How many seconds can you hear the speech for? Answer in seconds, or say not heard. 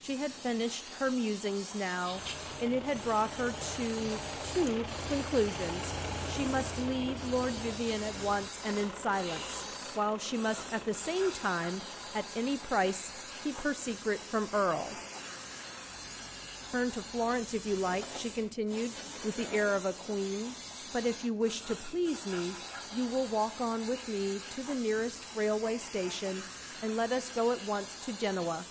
27 s.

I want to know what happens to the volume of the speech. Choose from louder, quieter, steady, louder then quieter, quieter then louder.
steady.